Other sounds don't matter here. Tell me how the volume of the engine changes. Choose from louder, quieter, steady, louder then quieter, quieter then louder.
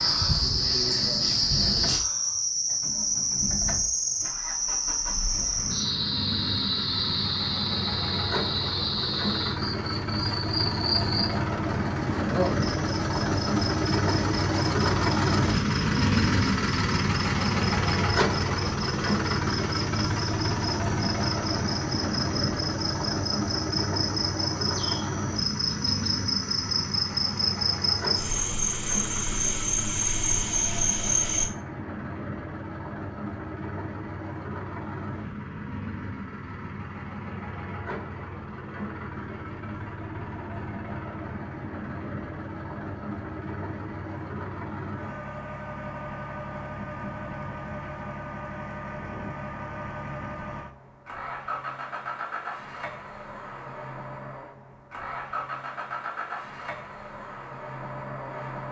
louder then quieter.